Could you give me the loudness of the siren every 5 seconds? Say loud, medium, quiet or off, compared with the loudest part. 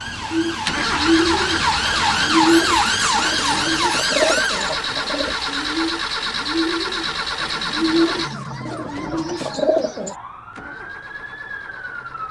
loud, quiet, quiet.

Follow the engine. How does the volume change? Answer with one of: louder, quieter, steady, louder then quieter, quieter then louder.
quieter.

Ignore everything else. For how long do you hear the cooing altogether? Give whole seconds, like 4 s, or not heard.
10 s.